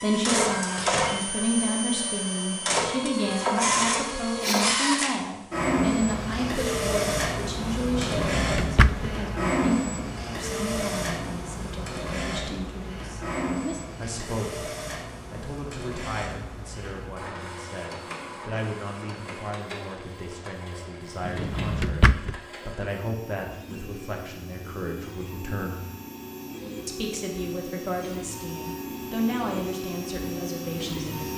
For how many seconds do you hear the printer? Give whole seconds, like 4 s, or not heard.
31 s.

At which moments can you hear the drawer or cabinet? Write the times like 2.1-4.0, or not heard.
8.0-9.2, 21.2-22.4.